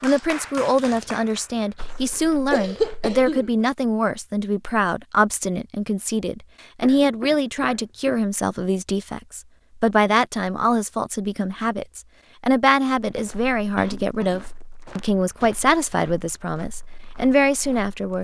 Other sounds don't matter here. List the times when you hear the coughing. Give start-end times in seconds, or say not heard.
2.5-3.5, 6.8-8.2, 13.8-14.5.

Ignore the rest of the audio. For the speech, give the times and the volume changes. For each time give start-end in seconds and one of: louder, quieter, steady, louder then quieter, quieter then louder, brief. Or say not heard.
0.0-18.1 steady.